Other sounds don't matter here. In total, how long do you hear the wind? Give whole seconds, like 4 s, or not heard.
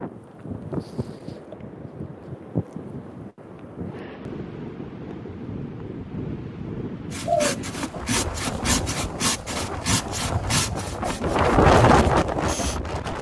13 s.